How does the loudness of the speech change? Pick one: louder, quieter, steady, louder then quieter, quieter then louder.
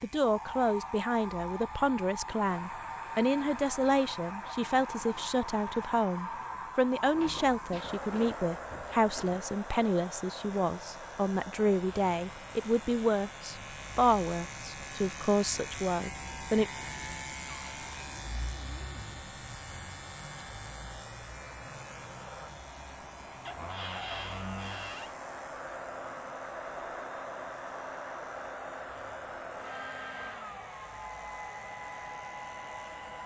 steady.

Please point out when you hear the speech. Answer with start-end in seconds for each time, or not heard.
0.0-16.6.